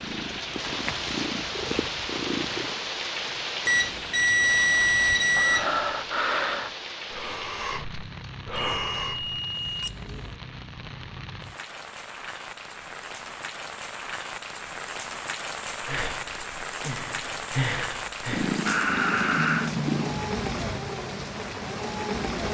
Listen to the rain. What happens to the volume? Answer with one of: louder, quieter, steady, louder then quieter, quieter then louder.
quieter then louder.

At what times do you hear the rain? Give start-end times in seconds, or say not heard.
0.0-22.4.